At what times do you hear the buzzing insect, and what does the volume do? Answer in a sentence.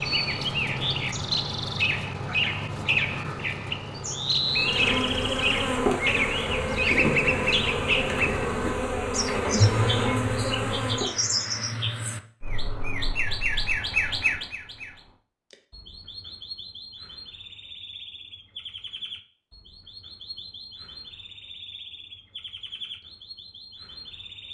The buzzing insect can be heard from 4.4 to 11.2 s, at a steady volume.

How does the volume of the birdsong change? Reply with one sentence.
The loudness of the birdsong goes down.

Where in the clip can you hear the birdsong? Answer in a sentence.
You can hear the birdsong from 0.0 to 24.4 s.